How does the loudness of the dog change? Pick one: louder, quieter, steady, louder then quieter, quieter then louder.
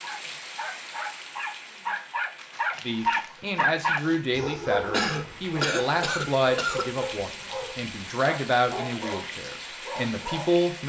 louder then quieter.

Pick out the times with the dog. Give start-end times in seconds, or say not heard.
0.0-10.8.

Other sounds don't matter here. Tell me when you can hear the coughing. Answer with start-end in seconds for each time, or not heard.
4.9-6.9.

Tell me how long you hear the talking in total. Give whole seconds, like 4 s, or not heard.
8 s.